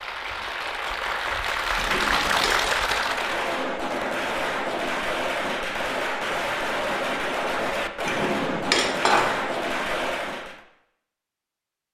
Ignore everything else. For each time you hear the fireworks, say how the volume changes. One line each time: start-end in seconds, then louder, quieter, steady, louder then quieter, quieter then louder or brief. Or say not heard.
2.9-10.6 steady.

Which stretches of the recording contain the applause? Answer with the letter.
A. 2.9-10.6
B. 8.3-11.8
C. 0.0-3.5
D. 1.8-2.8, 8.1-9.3
C.